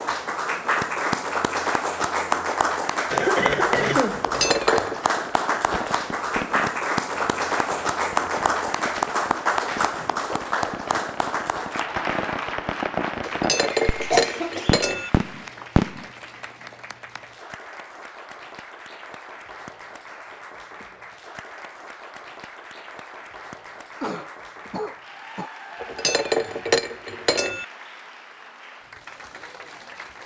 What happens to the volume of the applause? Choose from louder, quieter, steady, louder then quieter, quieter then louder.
quieter.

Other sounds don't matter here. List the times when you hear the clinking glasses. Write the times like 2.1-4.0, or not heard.
4.2-5.0, 13.2-15.1, 25.8-27.6.